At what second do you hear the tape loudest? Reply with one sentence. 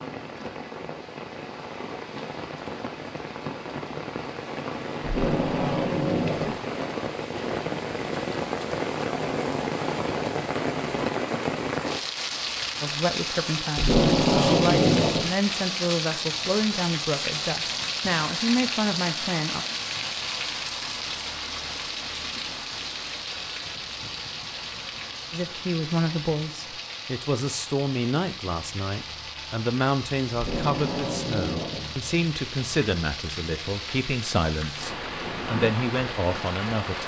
The loudest moment of the tape is at 14 seconds.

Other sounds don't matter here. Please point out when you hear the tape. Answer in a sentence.
You can hear the tape from 5.0 to 6.6 s, from 13.8 to 15.3 s and from 30.3 to 31.9 s.